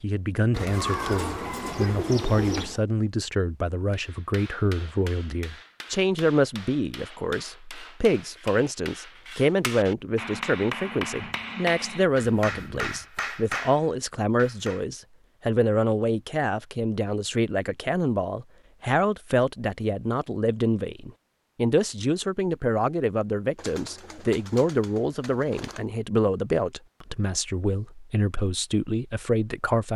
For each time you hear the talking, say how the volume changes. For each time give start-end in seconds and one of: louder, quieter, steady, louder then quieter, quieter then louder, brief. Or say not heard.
0.0-29.9 steady.